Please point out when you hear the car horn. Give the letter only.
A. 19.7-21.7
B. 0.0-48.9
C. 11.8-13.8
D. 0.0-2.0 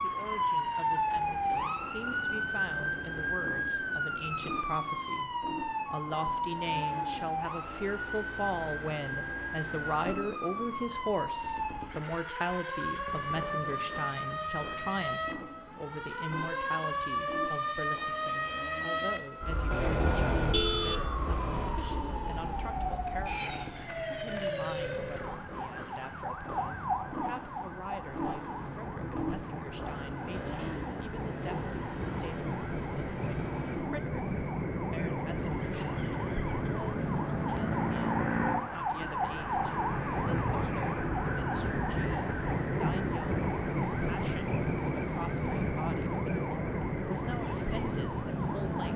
A.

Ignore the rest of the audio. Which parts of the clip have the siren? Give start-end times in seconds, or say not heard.
0.0-48.9.